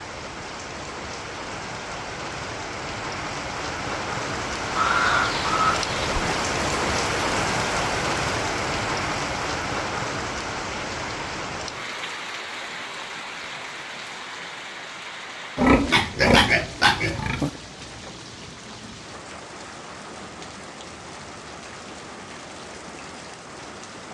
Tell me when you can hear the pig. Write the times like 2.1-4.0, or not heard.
4.8-6.3, 15.6-17.5.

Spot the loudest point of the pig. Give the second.
16 s.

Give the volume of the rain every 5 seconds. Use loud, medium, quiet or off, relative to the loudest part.
medium, loud, medium, quiet, quiet.